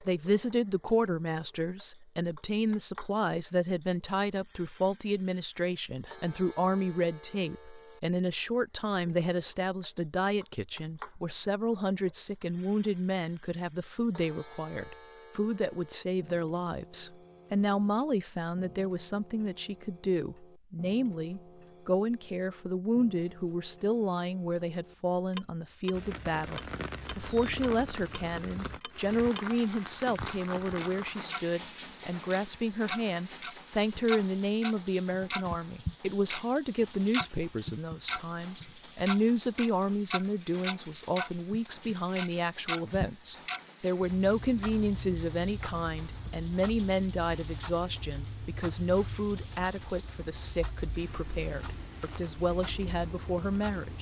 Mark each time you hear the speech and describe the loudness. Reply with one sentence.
You can hear the speech from 0.0 to 53.9 s, at a steady volume.